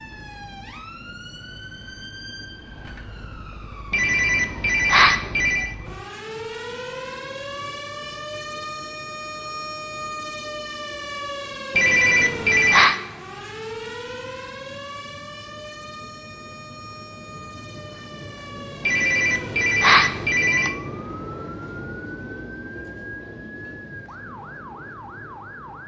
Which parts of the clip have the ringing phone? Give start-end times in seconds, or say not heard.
3.9-5.7, 11.8-13.0, 18.8-20.8.